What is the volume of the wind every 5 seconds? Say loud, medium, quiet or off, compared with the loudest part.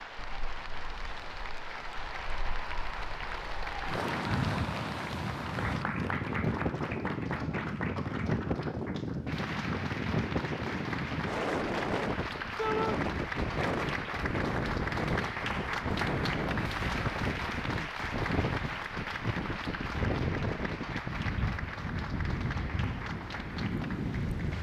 medium, loud, loud, loud, loud.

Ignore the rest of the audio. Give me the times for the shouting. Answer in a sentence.
You can hear the shouting from 12.6 to 13.0 s.